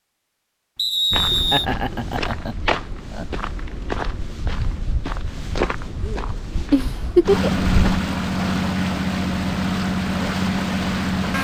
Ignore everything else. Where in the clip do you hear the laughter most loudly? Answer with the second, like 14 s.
7 s.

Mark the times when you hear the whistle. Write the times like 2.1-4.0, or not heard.
0.8-1.6.